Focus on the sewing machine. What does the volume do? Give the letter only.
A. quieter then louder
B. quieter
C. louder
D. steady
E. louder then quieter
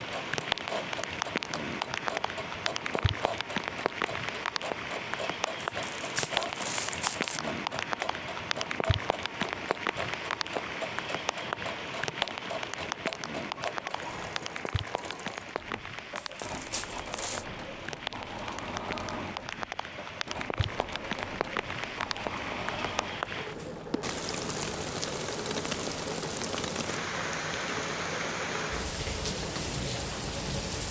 D.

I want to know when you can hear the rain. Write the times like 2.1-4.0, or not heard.
0.0-30.8.